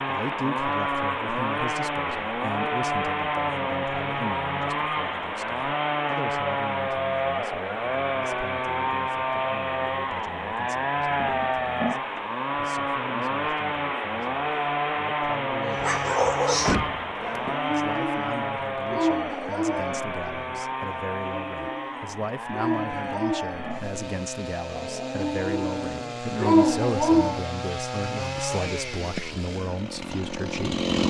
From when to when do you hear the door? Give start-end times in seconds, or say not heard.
16.6-17.6.